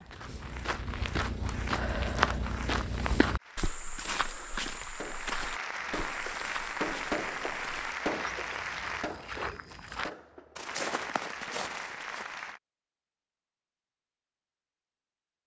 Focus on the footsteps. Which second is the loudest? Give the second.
2 s.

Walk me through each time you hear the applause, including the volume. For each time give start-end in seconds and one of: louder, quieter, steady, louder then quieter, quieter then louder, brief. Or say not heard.
3.4-9.1 louder
10.6-12.6 brief.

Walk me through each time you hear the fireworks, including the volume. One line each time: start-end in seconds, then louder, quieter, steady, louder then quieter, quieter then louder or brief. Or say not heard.
4.2-10.7 louder then quieter.